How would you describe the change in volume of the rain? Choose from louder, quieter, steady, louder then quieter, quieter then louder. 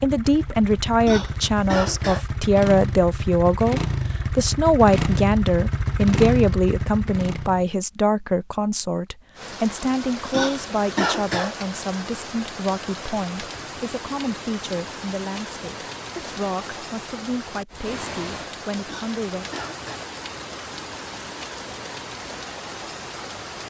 steady.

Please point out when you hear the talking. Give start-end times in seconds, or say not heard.
0.0-19.4.